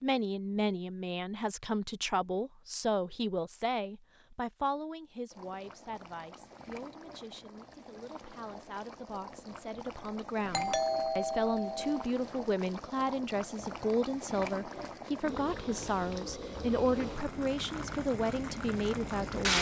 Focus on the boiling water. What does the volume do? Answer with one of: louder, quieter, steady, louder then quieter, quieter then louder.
louder.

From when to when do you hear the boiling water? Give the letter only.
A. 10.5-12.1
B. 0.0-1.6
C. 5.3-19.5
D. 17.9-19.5
C.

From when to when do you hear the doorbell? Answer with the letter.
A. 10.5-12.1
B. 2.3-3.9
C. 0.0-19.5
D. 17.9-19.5
A.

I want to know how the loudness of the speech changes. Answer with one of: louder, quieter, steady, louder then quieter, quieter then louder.
quieter then louder.